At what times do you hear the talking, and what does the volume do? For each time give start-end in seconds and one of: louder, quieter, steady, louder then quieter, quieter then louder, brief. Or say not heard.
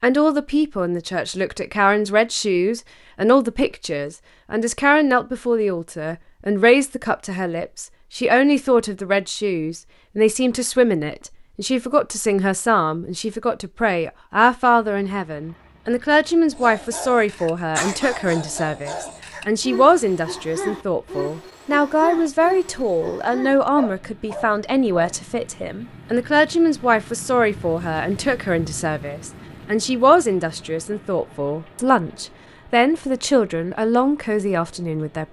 0.0-35.2 steady.